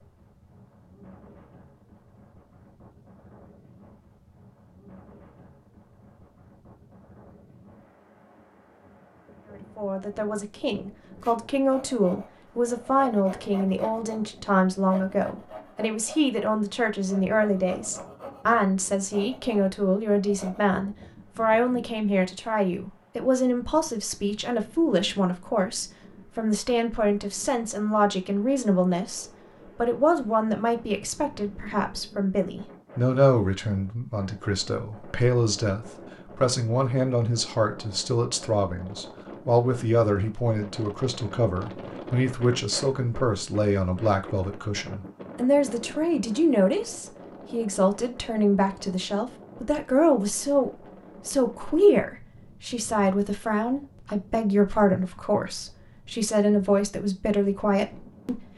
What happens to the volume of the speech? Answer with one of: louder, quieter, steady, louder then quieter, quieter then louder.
steady.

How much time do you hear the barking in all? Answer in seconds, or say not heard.
not heard.